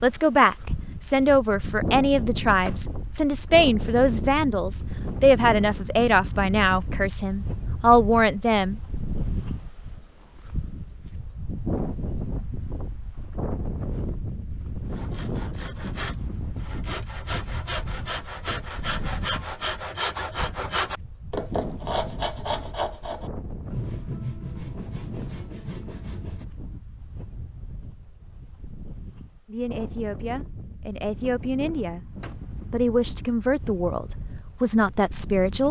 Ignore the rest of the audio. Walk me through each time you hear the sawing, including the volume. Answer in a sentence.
The sawing can be heard from 14.9 to 26.4 s, getting louder then quieter.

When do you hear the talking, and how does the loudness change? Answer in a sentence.
The talking can be heard from 0.0 to 8.8 s, at a steady volume; briefly from 29.4 to 32.0 s; and briefly from 32.7 to 35.6 s.